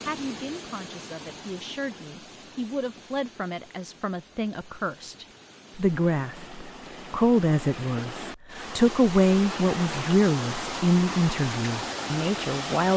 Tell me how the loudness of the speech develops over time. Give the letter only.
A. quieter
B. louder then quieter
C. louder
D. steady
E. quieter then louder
C.